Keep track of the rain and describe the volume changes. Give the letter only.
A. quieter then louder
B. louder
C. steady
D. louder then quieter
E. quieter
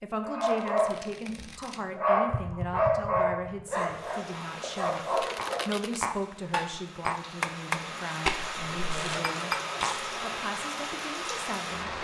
A.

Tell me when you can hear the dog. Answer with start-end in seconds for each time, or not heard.
0.2-5.6.